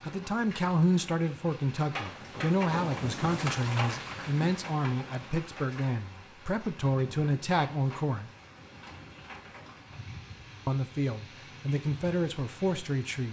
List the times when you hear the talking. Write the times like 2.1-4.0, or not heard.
0.0-8.3, 10.7-13.2.